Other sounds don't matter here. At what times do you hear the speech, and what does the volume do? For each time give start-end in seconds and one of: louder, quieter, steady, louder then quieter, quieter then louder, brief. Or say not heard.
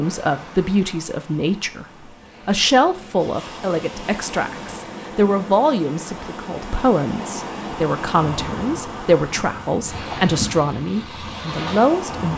0.0-12.3 steady.